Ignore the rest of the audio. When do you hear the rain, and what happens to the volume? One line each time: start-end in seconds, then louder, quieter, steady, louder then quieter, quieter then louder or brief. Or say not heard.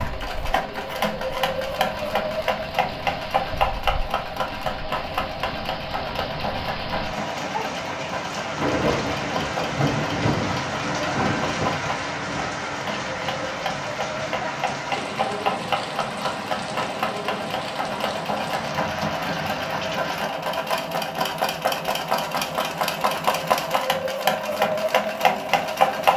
0.0-20.3 louder then quieter.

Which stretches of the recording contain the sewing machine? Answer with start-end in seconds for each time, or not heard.
0.0-26.1.